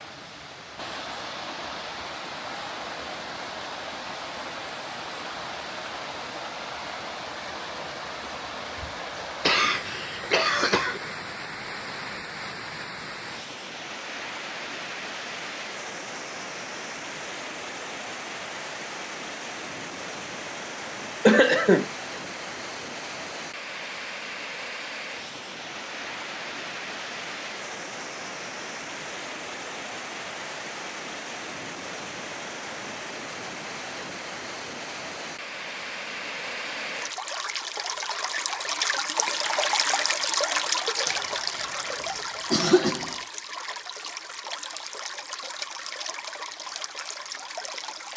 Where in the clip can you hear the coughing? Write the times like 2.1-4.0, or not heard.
9.4-11.0, 21.2-21.9, 41.0-43.2.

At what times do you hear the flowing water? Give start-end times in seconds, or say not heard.
0.0-48.1.